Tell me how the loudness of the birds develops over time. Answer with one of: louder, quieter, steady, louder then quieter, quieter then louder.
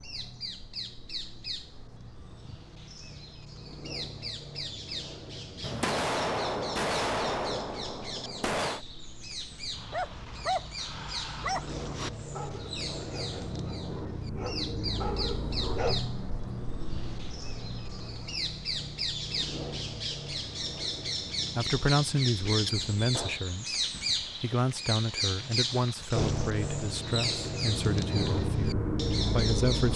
louder.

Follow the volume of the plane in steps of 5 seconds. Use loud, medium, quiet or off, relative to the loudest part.
quiet, quiet, medium, medium, quiet, loud.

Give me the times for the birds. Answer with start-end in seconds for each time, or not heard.
0.0-29.9.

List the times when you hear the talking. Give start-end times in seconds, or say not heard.
21.6-29.9.